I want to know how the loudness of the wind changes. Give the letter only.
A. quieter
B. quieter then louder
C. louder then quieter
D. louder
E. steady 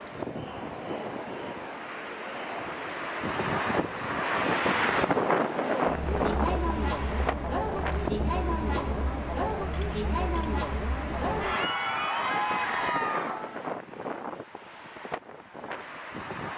C.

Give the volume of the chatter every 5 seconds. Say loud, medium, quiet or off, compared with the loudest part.
medium, loud, loud, off.